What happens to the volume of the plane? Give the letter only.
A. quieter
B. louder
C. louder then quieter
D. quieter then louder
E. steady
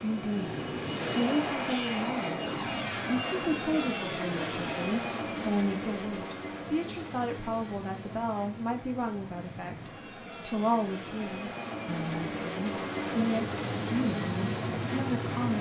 D.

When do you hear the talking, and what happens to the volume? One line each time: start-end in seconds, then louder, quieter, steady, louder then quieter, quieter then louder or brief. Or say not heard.
0.0-2.5 brief
3.0-15.5 steady.